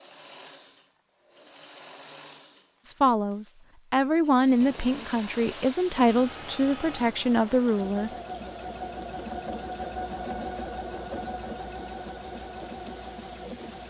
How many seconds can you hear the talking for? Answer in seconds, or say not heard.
5 s.